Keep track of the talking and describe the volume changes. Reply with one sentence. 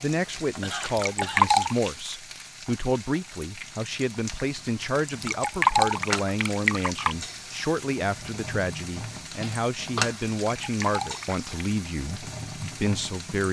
The loudness of the talking stays about the same.